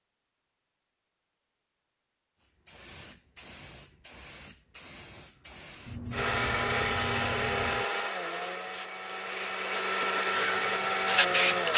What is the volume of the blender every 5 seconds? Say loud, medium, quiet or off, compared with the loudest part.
off, loud, loud.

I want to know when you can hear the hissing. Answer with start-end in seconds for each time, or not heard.
2.4-11.7.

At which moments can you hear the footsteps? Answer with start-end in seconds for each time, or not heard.
not heard.